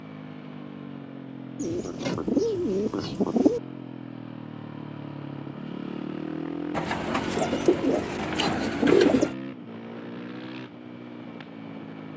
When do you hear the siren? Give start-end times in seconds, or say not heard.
not heard.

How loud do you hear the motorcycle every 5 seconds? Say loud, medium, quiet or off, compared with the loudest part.
medium, loud, medium.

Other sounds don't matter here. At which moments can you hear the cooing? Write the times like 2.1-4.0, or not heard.
1.6-3.6, 6.8-9.3.